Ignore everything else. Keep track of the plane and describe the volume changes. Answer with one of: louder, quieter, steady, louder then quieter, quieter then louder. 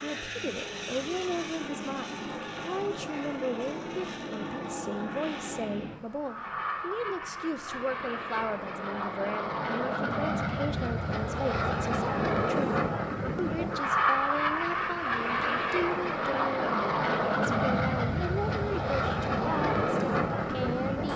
louder.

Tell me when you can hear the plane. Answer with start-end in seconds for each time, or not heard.
0.0-21.1.